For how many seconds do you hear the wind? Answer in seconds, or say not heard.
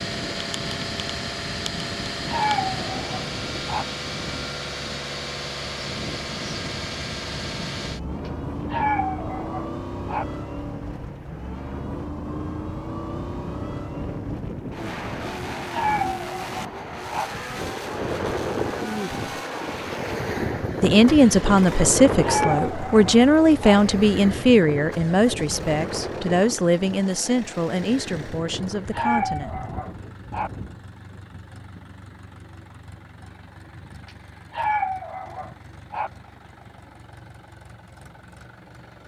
31 s.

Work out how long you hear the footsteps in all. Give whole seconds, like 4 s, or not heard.
not heard.